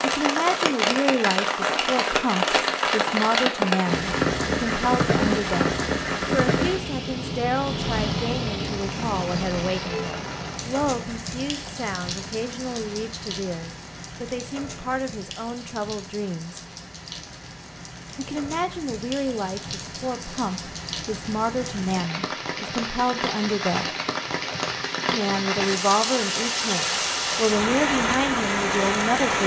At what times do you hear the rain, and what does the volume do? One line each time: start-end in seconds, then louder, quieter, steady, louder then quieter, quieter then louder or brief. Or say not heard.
0.0-29.4 quieter then louder.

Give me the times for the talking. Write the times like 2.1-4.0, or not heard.
0.0-16.6, 18.1-23.9, 25.1-29.4.